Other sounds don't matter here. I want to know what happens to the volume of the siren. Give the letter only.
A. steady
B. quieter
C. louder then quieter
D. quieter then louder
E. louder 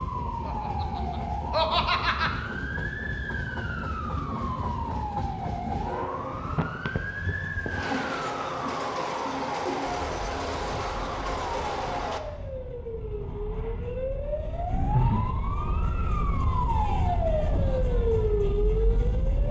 E.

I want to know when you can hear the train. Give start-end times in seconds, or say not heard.
0.0-12.2.